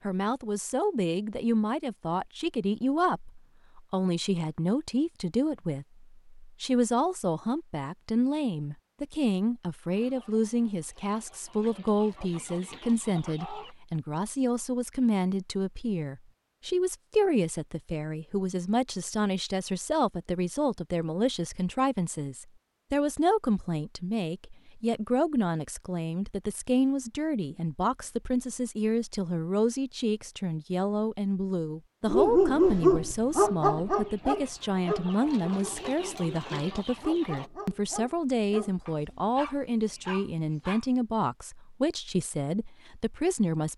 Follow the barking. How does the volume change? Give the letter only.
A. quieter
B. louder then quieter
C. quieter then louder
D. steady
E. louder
A.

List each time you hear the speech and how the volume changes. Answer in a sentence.
The speech can be heard from 0.0 to 43.7 s, at a steady volume.